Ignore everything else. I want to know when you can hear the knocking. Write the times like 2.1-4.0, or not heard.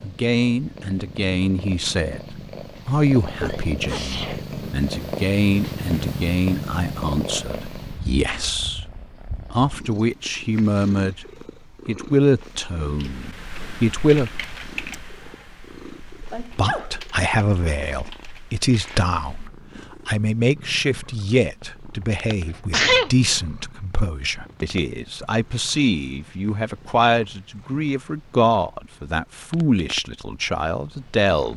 not heard.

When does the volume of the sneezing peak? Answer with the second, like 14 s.
23 s.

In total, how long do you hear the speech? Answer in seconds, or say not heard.
29 s.